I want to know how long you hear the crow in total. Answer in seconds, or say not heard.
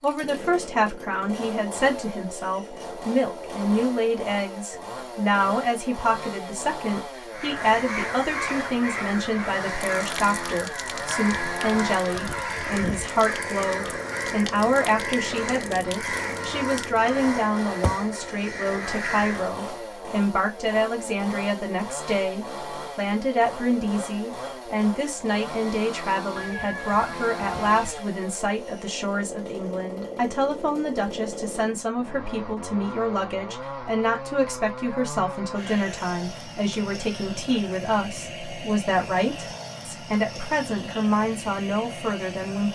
12 s.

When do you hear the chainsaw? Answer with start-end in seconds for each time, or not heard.
0.0-42.7.